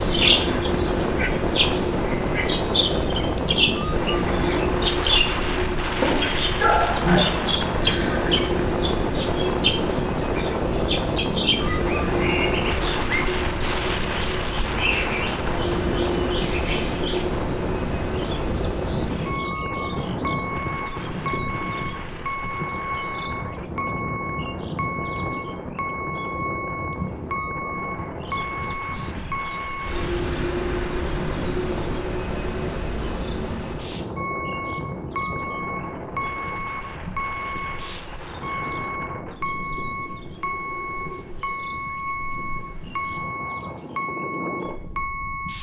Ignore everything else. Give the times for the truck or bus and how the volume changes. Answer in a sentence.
The truck or bus can be heard from 0.0 to 45.5 s, at a steady volume.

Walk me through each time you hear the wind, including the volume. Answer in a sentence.
You can hear the wind from 0.0 to 45.5 s, getting quieter.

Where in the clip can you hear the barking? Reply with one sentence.
The barking can be heard from 6.5 to 7.2 s.